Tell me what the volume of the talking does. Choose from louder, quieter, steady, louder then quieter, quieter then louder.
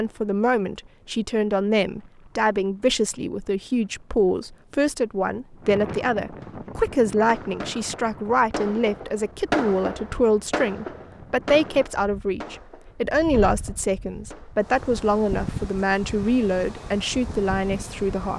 steady.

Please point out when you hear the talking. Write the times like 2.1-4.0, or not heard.
0.0-18.3.